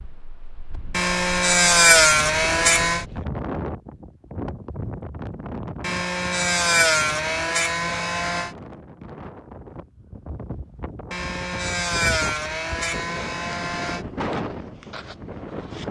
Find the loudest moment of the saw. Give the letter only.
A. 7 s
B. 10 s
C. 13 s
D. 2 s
D.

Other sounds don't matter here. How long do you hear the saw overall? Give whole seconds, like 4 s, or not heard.
8 s.